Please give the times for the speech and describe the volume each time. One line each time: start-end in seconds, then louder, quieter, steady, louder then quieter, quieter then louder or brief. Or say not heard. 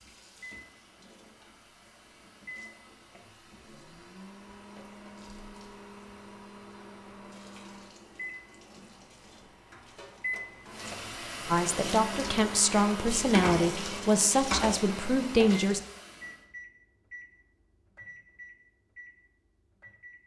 11.5-15.8 steady.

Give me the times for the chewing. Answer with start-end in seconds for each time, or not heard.
not heard.